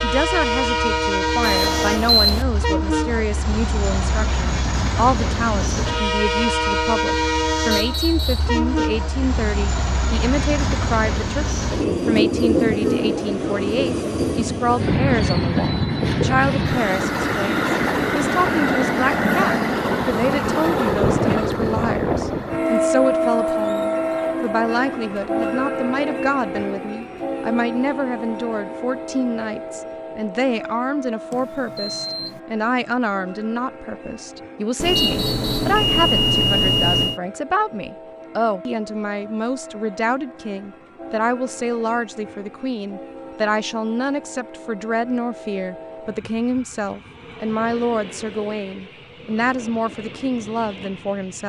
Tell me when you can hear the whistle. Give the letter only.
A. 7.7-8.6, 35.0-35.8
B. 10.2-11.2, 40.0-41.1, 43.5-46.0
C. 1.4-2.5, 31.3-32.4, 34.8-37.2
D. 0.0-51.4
A.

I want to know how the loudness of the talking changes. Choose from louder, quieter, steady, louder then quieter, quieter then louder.
steady.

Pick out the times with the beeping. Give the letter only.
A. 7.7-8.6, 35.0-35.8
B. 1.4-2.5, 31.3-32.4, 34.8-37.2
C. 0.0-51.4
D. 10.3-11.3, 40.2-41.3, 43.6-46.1
B.